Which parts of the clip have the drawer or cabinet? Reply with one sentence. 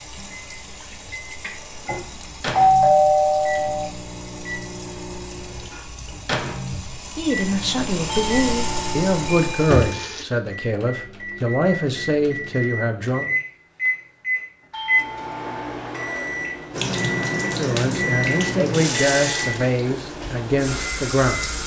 You can't hear the drawer or cabinet here.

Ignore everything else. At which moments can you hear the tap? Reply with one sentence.
The tap can be heard from 0.0 to 10.2 s and from 16.7 to 21.6 s.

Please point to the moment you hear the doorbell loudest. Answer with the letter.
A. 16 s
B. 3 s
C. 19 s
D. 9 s
B.